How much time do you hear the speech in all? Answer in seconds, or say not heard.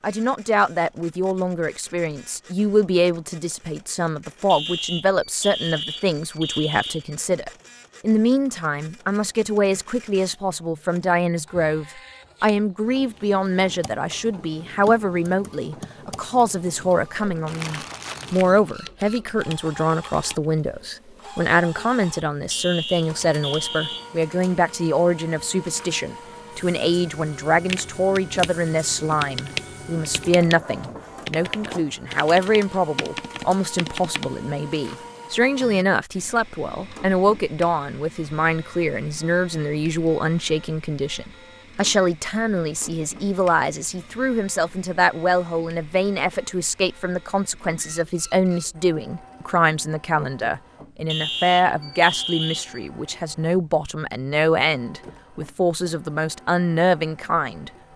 58 s.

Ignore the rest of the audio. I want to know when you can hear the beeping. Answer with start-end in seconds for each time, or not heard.
4.5-7.2, 22.5-24.2, 51.0-52.9.